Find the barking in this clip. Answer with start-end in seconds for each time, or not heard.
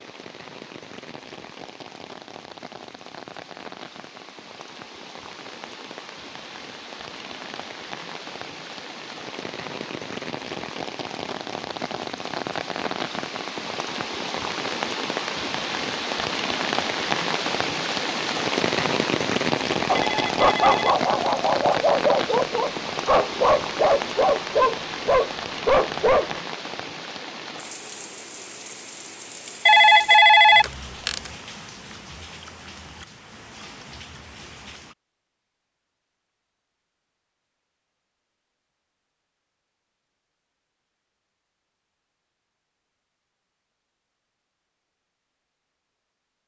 19.9-26.4.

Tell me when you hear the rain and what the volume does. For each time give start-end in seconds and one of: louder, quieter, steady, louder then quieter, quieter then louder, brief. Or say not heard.
0.0-35.0 louder then quieter.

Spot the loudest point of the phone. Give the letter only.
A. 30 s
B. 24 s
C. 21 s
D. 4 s
A.